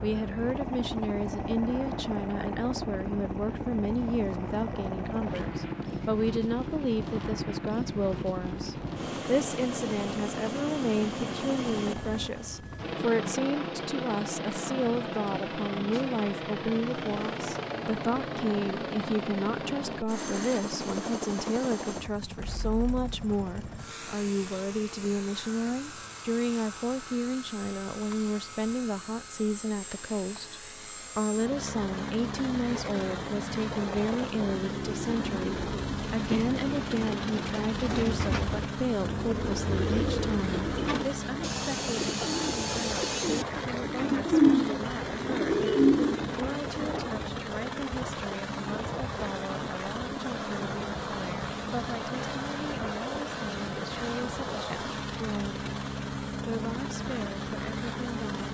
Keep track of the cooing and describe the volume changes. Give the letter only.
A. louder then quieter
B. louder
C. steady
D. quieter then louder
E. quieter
B.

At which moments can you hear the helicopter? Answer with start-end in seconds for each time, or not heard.
0.0-58.5.